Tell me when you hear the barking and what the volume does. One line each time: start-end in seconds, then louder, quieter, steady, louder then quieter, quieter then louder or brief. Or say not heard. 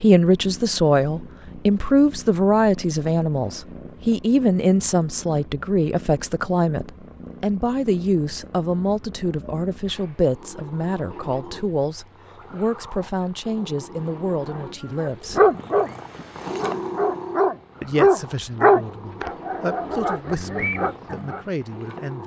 14.9-15.9 brief
16.6-21.4 louder then quieter.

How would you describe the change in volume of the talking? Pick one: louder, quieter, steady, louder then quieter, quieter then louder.
quieter.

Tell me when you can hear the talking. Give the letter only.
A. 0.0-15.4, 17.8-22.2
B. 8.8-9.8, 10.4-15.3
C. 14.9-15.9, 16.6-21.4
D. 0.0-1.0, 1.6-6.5
A.